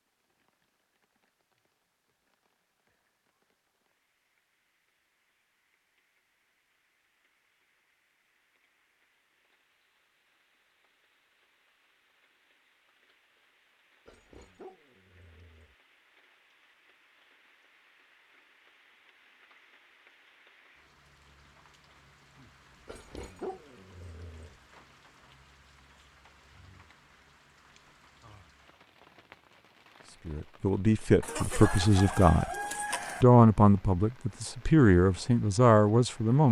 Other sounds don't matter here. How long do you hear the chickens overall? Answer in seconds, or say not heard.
2 s.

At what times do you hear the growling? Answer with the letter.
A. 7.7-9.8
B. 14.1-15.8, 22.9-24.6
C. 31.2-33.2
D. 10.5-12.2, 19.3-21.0
B.